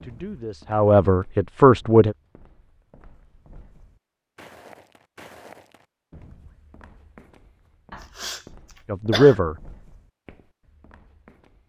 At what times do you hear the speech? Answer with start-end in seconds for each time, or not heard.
0.0-2.1, 8.8-9.6.